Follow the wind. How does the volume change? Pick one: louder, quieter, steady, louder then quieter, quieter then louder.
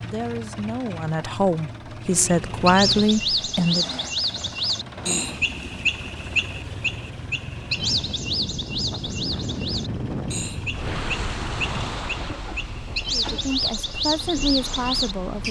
quieter.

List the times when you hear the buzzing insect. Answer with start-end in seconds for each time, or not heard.
not heard.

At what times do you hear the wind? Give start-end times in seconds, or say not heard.
7.7-15.4.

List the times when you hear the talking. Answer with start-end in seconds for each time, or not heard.
0.0-3.9, 13.1-15.4.